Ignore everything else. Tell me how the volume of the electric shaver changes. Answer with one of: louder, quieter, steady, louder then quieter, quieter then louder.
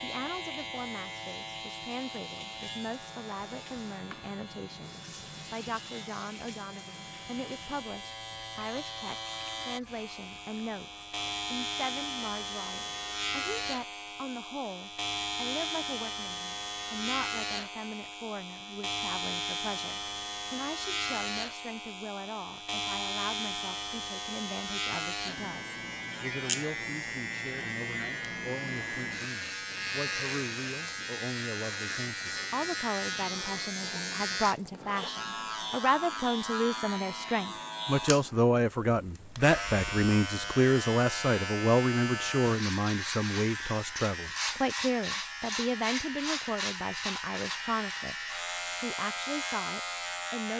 louder.